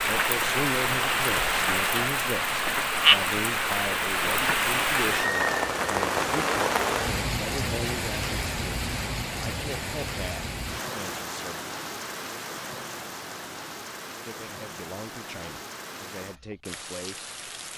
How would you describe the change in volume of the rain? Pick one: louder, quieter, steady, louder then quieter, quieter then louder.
quieter.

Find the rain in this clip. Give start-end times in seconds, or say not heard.
0.0-17.7.